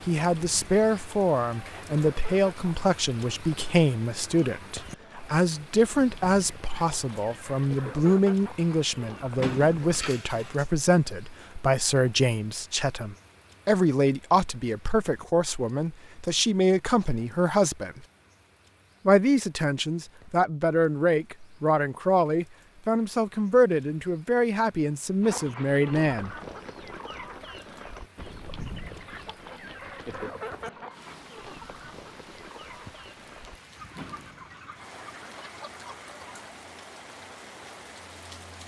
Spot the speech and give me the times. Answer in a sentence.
You can hear the speech from 0.1 to 18.0 s and from 19.1 to 26.4 s.